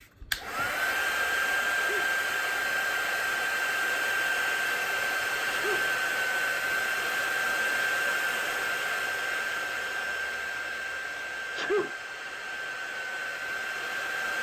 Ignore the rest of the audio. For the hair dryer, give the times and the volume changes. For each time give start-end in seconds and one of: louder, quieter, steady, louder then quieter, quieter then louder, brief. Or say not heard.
0.0-14.3 quieter.